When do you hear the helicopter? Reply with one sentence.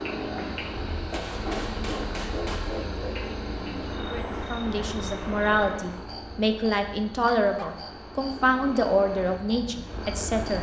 The helicopter can be heard from 0.0 to 10.5 s.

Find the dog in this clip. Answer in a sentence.
The dog can be heard from 1.1 to 3.0 s and from 7.2 to 7.8 s.